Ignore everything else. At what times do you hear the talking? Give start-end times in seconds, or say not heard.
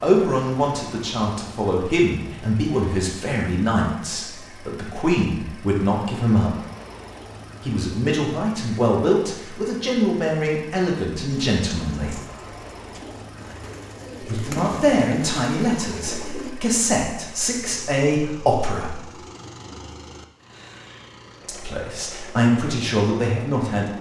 0.0-6.6, 7.6-12.2, 14.2-19.0, 21.4-23.9.